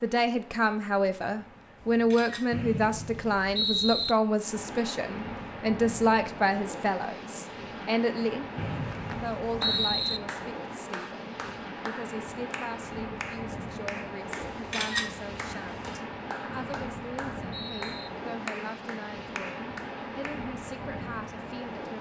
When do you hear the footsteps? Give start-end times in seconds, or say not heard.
not heard.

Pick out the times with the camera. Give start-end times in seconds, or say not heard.
1.8-2.6, 14.4-16.0.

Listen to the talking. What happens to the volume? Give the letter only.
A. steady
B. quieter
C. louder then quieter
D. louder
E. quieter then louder
B.